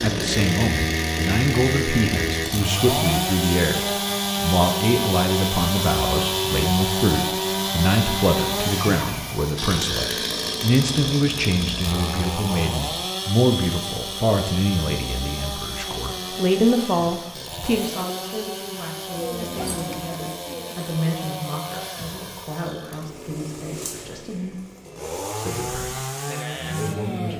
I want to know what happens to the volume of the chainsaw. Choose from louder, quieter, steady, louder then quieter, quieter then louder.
quieter.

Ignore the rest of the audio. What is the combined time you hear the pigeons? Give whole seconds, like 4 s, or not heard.
2 s.